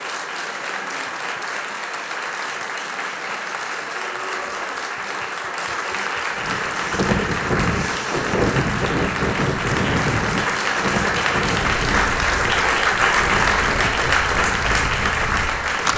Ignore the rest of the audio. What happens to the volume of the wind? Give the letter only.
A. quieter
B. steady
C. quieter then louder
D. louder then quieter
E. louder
A.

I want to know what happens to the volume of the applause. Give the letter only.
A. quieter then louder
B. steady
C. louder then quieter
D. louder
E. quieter
D.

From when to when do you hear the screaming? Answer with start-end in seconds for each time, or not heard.
3.9-4.8.